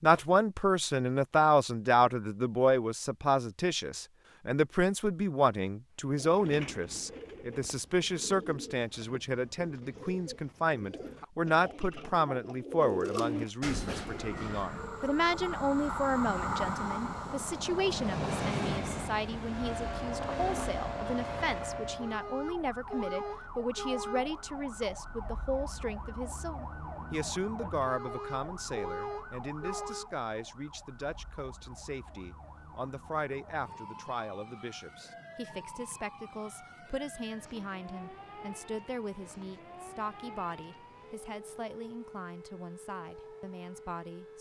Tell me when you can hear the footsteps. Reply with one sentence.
The footsteps can't be heard in this clip.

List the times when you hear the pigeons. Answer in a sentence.
You can hear the pigeons from 6.0 to 14.8 s.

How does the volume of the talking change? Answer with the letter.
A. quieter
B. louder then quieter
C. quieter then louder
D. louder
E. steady
A.